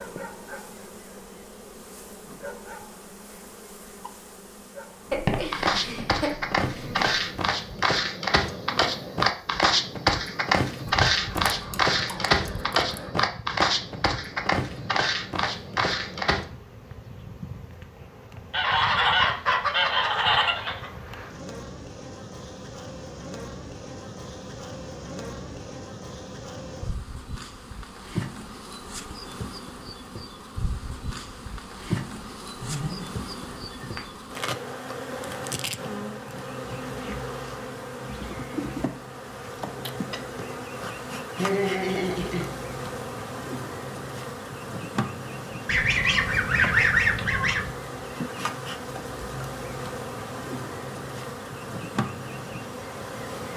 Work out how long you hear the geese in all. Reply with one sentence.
The geese can be heard for 7 seconds in total.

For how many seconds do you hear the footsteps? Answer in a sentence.
You can hear the footsteps for 11 seconds altogether.